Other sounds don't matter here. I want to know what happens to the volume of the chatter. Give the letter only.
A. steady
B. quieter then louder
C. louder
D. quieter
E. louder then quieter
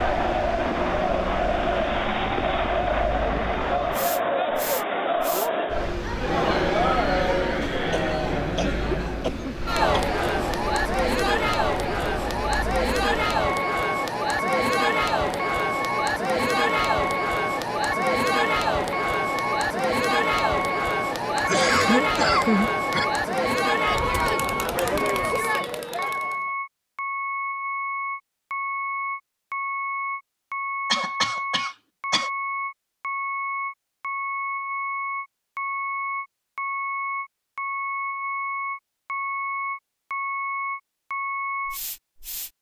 A.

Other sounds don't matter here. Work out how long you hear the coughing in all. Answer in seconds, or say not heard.
5 s.